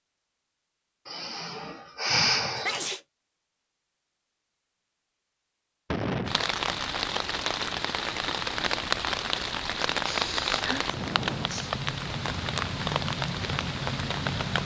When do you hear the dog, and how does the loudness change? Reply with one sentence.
The dog can't be heard in this clip.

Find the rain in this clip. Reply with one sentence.
The rain can be heard from 6.2 to 14.6 s.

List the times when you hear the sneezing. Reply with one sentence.
You can hear the sneezing from 2.5 to 3.0 s and from 10.0 to 11.8 s.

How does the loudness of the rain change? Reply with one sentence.
The volume of the rain stays about the same.